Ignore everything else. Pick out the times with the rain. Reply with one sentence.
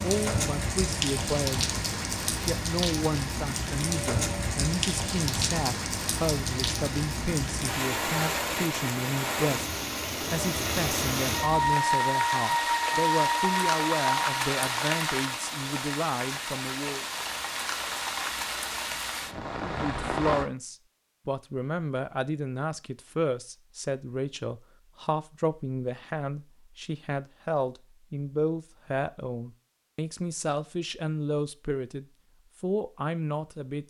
The rain can be heard from 0.0 to 20.5 s.